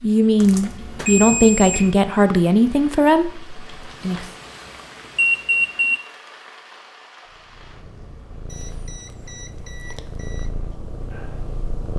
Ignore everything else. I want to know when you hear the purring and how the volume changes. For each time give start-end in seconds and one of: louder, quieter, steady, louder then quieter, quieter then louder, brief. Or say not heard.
7.2-11.9 louder.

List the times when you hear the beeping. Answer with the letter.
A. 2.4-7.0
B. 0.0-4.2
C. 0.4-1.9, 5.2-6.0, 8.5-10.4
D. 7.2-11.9
C.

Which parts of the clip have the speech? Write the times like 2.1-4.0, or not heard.
0.0-4.2.